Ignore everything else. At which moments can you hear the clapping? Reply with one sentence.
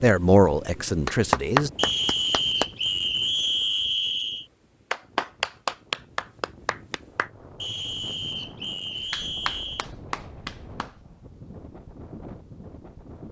The clapping can be heard from 1.1 to 2.6 s, from 4.9 to 7.3 s and from 9.1 to 10.9 s.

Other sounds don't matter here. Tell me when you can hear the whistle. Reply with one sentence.
The whistle can be heard from 1.8 to 4.5 s and from 7.6 to 9.9 s.